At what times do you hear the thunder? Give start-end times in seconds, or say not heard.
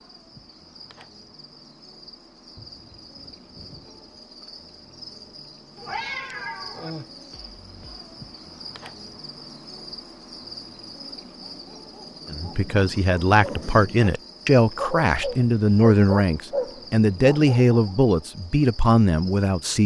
2.5-4.0.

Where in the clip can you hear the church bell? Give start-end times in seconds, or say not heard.
not heard.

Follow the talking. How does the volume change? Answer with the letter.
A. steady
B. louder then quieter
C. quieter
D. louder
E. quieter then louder
A.